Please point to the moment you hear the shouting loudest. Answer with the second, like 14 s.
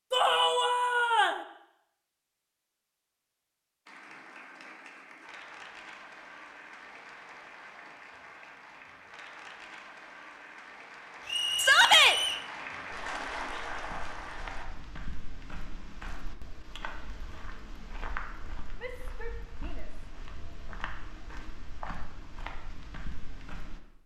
12 s.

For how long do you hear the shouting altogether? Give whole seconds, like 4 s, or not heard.
3 s.